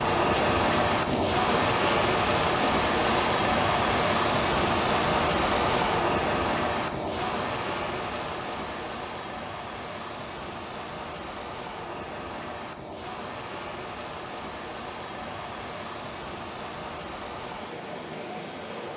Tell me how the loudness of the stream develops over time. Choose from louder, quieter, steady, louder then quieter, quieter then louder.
quieter.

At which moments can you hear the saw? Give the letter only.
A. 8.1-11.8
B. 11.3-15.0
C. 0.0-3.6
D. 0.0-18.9
C.